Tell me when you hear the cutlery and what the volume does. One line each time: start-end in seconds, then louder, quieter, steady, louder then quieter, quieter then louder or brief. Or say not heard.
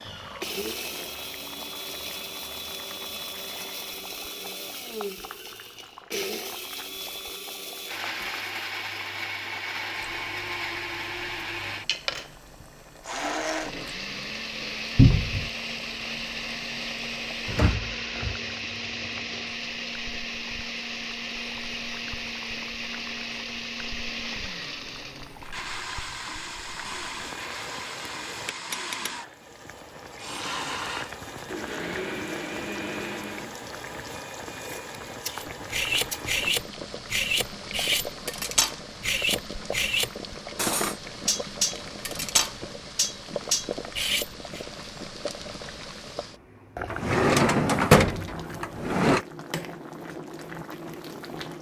35.3-44.6 steady.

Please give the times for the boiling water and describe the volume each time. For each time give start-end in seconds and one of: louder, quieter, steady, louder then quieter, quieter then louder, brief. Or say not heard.
0.0-51.5 louder.